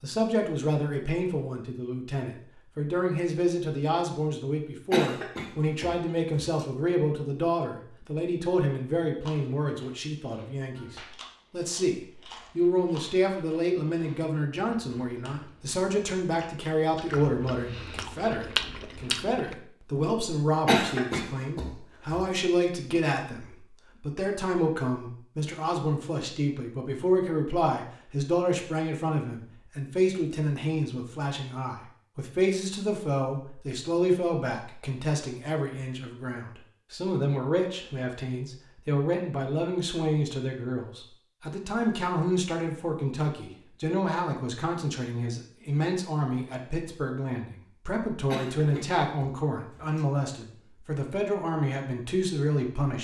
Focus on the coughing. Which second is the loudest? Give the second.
21 s.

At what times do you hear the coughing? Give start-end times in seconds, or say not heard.
4.9-6.7, 20.6-22.4, 48.3-50.0.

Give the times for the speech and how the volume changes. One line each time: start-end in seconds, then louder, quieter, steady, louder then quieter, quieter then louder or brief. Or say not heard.
0.0-52.9 steady.